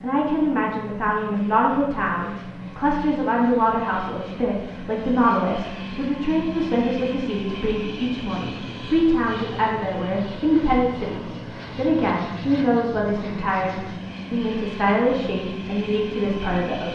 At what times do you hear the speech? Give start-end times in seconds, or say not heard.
0.0-16.9.